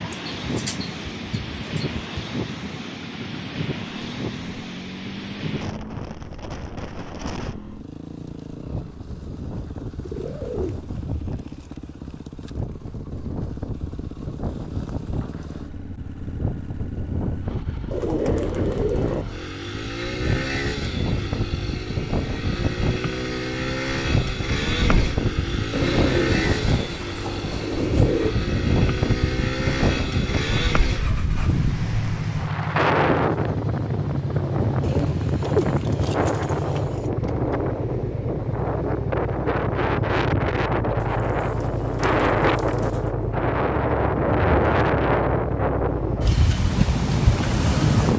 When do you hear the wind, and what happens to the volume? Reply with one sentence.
You can hear the wind from 0.0 to 48.1 s, getting louder.